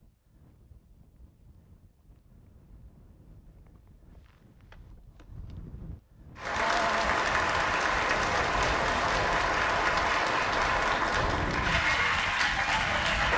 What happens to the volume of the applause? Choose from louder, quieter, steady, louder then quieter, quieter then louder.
steady.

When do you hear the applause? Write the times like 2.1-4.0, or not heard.
6.3-13.3.